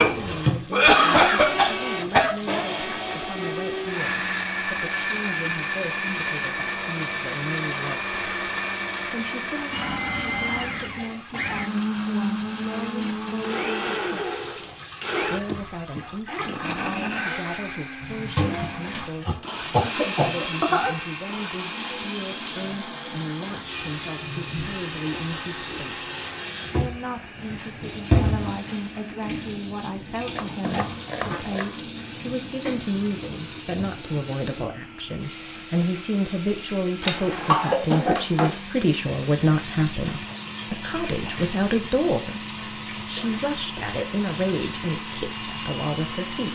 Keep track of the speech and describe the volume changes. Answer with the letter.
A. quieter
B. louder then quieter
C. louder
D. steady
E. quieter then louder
C.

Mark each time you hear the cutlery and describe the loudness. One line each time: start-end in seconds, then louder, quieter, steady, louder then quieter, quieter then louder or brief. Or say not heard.
not heard.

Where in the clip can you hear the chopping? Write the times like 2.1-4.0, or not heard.
30.4-31.8.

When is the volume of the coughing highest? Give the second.
1 s.